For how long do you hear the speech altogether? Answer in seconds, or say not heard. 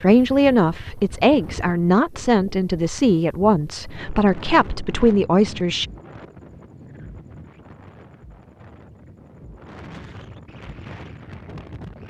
6 s.